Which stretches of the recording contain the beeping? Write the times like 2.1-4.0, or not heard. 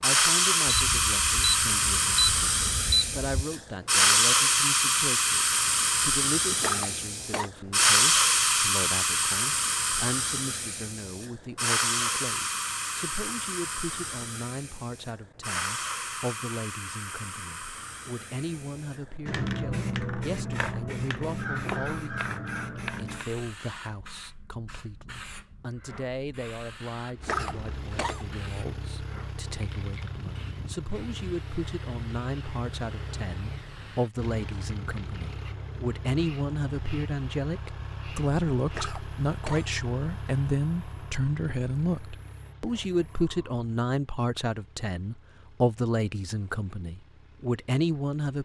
0.7-3.2.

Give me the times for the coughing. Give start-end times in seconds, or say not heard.
6.5-7.5, 27.2-28.3, 38.7-39.8.